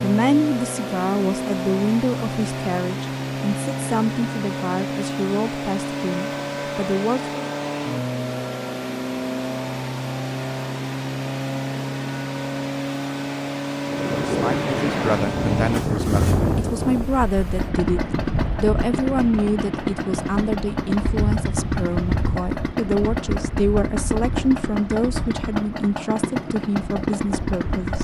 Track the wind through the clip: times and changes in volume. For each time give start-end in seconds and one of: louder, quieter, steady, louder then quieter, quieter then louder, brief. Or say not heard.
13.8-27.9 quieter.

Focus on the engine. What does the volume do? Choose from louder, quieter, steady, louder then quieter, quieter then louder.
steady.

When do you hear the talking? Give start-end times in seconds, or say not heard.
0.0-7.4, 14.2-27.9.